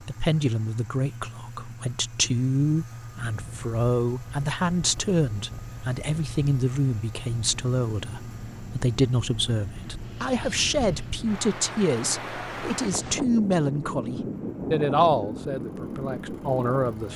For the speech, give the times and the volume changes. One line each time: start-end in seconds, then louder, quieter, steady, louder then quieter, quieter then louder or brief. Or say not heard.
0.0-17.1 steady.